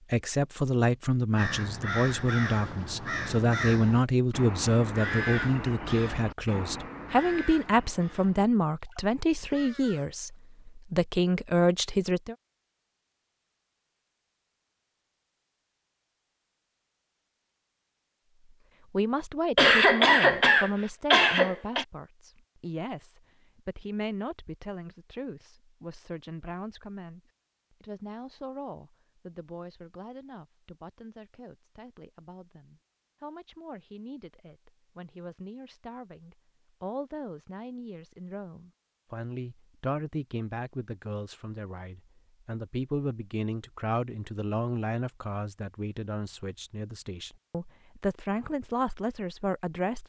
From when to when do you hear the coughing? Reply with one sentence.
You can hear the coughing from 19.6 to 21.9 s.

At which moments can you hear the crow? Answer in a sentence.
The crow can be heard from 1.4 to 10.3 s.